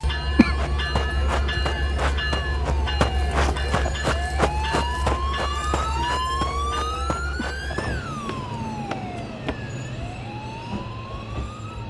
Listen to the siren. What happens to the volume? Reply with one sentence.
The loudness of the siren goes up, then down.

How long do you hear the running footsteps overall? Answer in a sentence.
The running footsteps can be heard for 9 seconds in total.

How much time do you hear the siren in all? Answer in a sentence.
The siren can be heard for 12 seconds in total.